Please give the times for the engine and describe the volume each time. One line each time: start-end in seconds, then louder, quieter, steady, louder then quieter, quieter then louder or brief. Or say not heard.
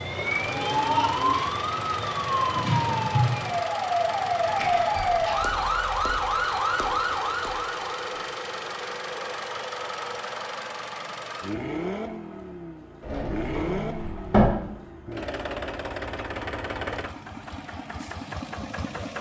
0.1-19.1 steady.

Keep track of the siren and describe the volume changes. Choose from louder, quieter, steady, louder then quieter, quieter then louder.
steady.